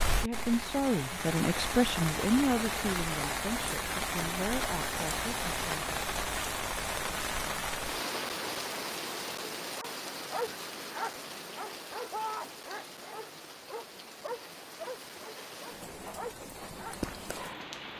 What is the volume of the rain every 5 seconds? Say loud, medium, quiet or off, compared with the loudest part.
loud, loud, medium, medium.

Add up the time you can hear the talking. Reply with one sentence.
The talking can be heard for 6 seconds in total.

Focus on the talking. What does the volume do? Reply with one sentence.
The loudness of the talking goes down.